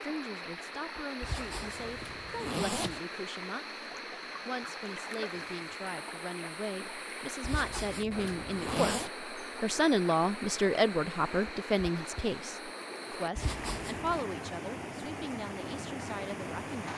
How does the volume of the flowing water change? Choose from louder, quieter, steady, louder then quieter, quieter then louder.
steady.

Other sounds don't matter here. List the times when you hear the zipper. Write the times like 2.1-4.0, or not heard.
1.2-3.0, 7.4-9.1, 13.3-14.2.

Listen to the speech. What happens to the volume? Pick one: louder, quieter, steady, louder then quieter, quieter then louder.
louder then quieter.